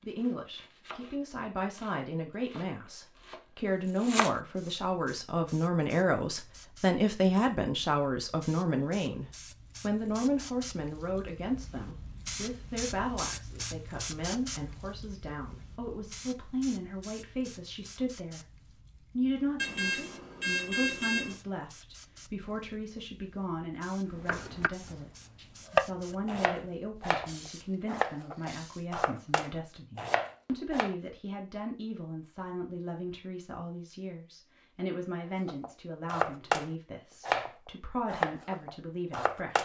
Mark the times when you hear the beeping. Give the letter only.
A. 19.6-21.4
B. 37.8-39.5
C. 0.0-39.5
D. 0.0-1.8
A.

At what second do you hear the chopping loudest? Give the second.
26 s.